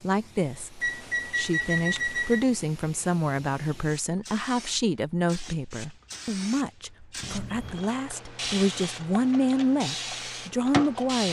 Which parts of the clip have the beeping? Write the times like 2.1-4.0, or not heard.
0.8-2.5, 7.2-7.9.